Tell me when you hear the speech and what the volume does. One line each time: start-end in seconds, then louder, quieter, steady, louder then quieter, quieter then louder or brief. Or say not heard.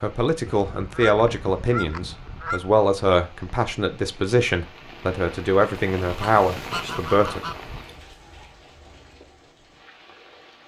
0.0-7.4 steady.